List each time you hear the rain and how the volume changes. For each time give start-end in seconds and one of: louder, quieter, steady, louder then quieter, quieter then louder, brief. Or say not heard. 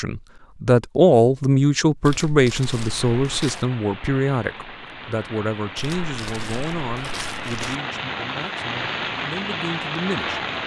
2.5-10.6 louder.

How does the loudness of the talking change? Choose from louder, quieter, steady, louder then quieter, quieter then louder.
quieter.